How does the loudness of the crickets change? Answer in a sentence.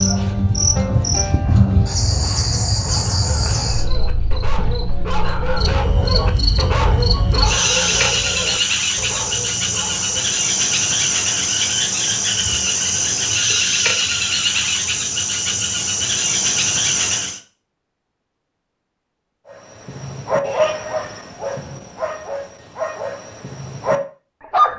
The loudness of the crickets goes down, then up.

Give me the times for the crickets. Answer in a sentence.
You can hear the crickets from 0.0 to 17.4 s.